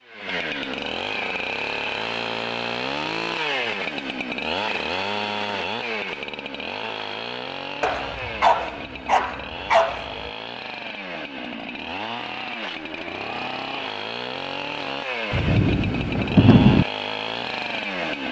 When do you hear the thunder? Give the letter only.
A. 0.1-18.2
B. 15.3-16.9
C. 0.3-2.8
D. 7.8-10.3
B.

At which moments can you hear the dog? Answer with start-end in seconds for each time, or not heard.
7.8-10.3.